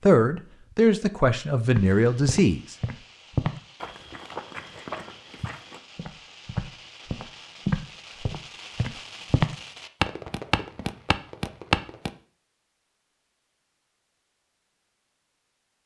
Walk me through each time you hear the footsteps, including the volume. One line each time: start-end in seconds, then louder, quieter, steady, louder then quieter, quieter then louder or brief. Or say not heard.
1.8-12.1 quieter then louder.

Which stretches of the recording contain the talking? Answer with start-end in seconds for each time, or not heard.
0.0-2.8.